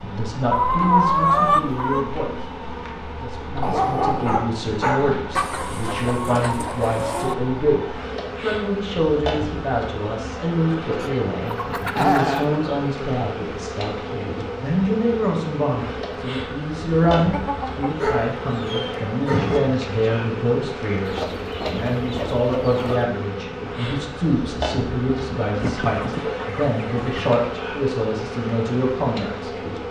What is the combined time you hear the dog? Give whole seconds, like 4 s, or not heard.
3 s.